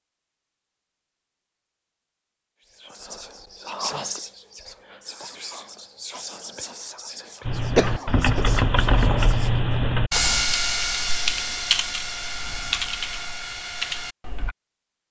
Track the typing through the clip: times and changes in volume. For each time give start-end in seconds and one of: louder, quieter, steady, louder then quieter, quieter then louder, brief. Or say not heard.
7.5-14.6 quieter.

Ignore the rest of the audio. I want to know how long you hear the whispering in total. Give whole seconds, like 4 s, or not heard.
7 s.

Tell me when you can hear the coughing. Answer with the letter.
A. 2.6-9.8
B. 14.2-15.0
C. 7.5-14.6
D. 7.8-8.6
D.